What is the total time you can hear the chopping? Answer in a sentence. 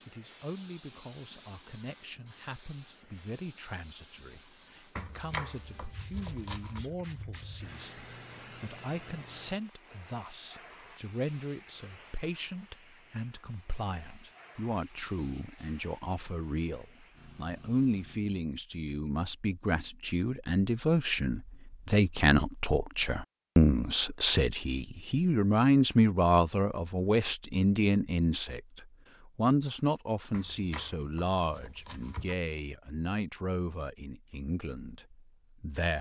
The chopping can be heard for 4 seconds in total.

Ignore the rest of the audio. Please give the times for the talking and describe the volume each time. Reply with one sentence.
You can hear the talking from 0.1 to 35.9 s, getting louder then quieter.